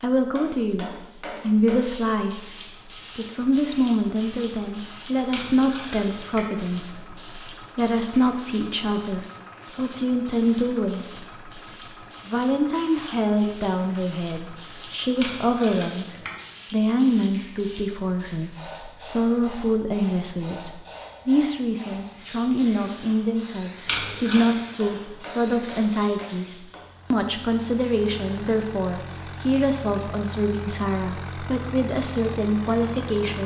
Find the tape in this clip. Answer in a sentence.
You can hear the tape from 5.3 to 6.5 s, from 15.2 to 16.4 s and from 23.9 to 24.6 s.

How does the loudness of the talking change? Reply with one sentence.
The loudness of the talking stays about the same.